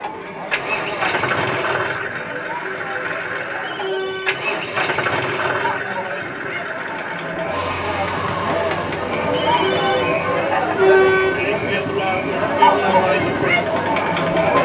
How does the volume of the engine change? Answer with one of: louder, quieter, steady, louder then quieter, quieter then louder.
quieter.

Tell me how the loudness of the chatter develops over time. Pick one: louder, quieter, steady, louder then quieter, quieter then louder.
louder.